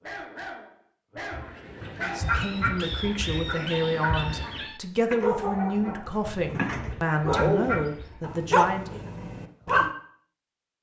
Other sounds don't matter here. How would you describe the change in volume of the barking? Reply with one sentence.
The volume of the barking goes up.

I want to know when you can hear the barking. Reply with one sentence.
You can hear the barking from 0.0 to 9.9 s.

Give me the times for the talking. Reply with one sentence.
You can hear the talking from 2.0 to 9.1 s.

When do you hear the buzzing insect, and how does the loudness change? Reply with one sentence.
You can't hear the buzzing insect here.